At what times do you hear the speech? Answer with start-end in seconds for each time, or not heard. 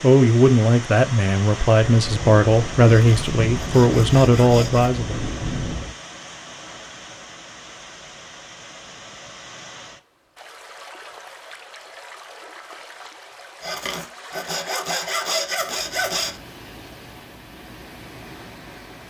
0.0-5.2.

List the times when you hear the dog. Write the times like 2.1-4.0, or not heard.
not heard.